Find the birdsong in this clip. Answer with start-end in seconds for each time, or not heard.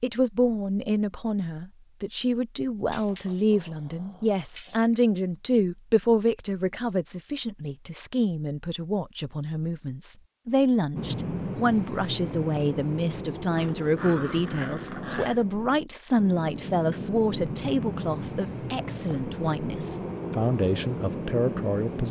10.9-22.0.